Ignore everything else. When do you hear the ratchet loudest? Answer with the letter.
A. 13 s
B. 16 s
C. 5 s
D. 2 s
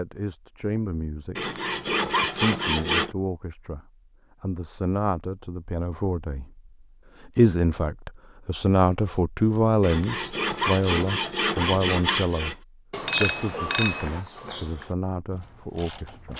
A.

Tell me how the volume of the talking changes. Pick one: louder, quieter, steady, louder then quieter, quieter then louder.
louder then quieter.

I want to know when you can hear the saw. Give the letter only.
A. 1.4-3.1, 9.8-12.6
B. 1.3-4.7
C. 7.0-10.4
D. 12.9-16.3
A.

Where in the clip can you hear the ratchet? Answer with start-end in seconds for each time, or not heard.
12.9-16.3.